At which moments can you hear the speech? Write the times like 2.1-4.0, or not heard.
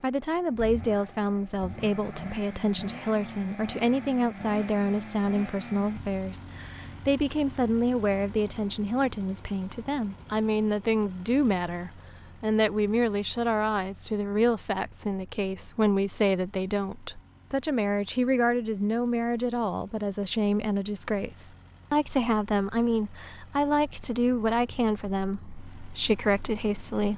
0.0-27.1.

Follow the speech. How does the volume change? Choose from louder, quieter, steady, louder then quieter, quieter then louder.
steady.